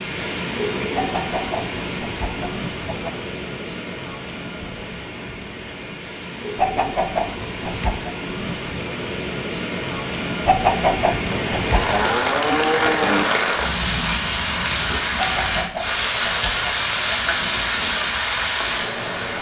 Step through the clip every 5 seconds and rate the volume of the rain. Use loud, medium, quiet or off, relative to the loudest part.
medium, medium, loud, loud.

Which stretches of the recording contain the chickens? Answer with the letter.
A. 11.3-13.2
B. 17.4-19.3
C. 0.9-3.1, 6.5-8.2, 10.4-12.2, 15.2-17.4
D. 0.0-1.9
C.